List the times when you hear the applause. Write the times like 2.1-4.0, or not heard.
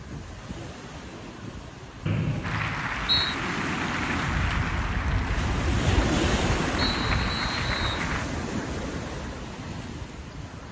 2.4-8.2.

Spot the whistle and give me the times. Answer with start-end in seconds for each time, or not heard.
2.0-3.4, 6.8-8.1.